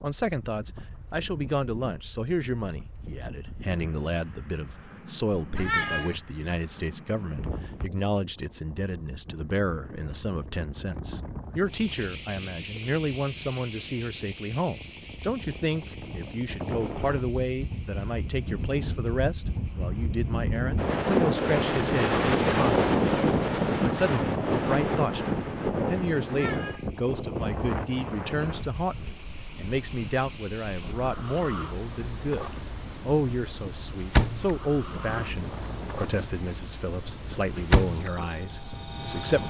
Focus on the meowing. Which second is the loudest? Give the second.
6 s.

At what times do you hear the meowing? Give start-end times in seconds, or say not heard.
5.5-6.2, 26.2-26.9.